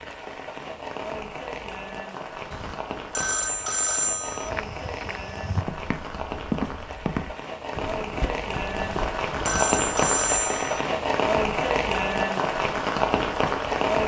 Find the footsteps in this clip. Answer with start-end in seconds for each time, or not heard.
4.5-9.6.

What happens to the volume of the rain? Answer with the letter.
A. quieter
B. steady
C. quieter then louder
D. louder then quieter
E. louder
E.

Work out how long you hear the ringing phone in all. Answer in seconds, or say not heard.
4 s.